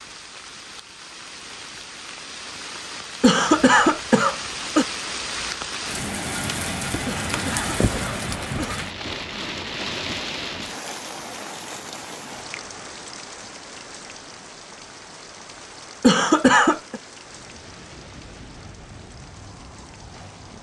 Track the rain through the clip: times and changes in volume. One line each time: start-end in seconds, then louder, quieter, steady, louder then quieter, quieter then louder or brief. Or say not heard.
0.0-20.5 louder then quieter.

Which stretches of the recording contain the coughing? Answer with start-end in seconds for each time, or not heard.
3.2-4.8, 7.0-8.8, 16.0-17.0.